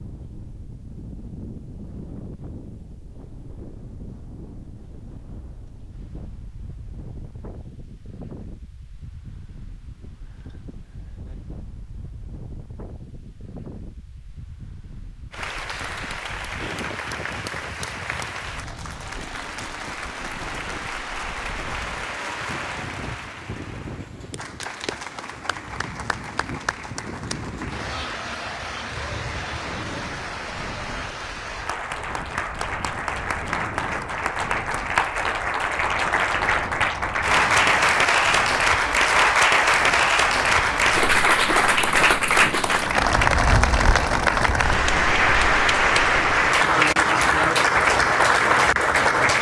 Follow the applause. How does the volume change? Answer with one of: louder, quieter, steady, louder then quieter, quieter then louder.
louder.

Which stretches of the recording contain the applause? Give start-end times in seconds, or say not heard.
15.3-49.3.